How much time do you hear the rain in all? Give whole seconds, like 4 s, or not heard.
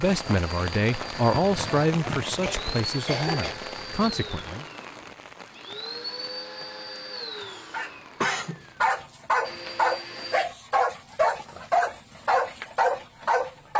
9 s.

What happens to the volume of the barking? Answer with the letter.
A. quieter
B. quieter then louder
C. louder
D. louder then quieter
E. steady
E.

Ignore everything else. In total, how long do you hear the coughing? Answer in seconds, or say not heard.
3 s.